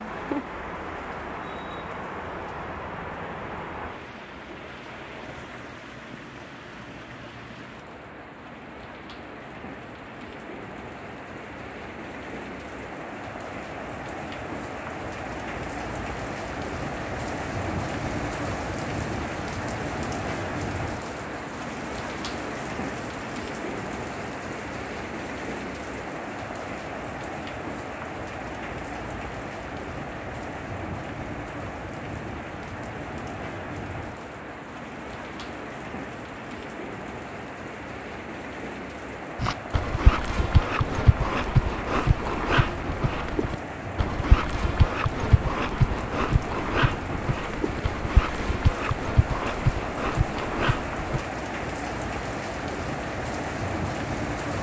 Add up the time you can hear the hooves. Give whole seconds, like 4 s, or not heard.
12 s.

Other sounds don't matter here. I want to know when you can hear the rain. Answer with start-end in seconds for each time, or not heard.
0.0-54.5.